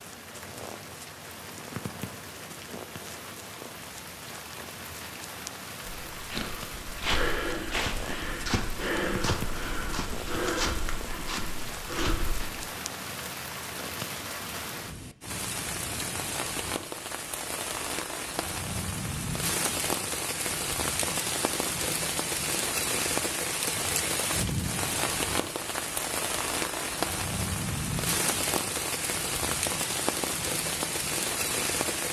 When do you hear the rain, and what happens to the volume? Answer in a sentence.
The rain can be heard from 0.0 to 32.0 s, getting louder.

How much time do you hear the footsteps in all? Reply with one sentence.
The footsteps can be heard for 7 seconds in total.